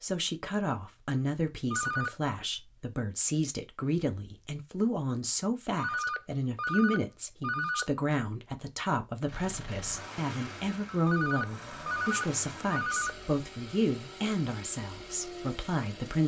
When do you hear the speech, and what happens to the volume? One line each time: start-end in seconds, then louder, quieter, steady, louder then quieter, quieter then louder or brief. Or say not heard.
0.0-16.2 steady.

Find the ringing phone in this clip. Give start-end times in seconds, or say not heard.
1.7-2.1, 5.8-7.9, 11.1-13.2.